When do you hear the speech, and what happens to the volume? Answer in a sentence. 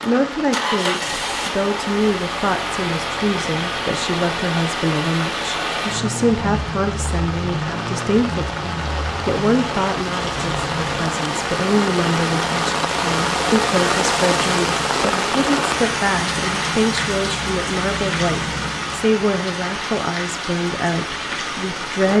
The speech can be heard from 0.0 to 22.1 s, at a steady volume.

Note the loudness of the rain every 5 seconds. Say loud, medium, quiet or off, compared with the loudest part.
medium, medium, loud, loud, medium.